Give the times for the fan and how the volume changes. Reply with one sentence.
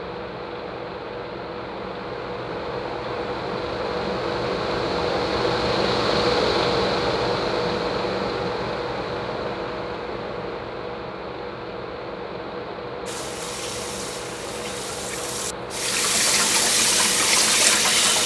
You can hear the fan from 0.0 to 18.2 s, getting louder then quieter.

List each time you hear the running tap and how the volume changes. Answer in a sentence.
You can hear the running tap from 13.1 to 18.2 s, getting louder.